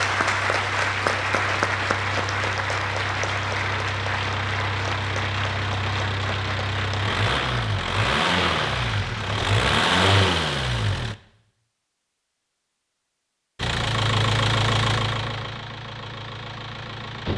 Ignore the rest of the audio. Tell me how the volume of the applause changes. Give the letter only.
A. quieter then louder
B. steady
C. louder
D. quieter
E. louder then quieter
D.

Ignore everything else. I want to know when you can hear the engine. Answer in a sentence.
You can hear the engine from 0.0 to 11.2 s and from 13.6 to 17.3 s.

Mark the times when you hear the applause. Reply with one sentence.
You can hear the applause from 0.0 to 9.4 s.